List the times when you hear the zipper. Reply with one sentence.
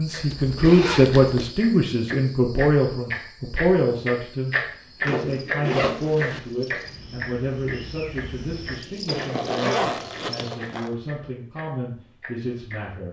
The zipper can be heard from 0.3 to 1.6 s, from 5.0 to 6.4 s and from 9.1 to 10.9 s.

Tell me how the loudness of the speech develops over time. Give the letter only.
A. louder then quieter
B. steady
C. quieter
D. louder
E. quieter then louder
C.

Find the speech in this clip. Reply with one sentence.
The speech can be heard from 0.0 to 13.0 s.